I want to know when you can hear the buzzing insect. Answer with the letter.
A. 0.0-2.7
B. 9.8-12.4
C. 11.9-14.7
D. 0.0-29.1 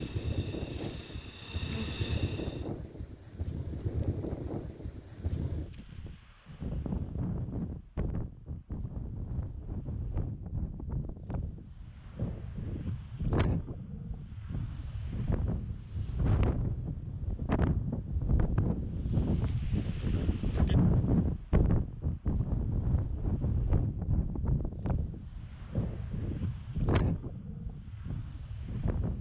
A.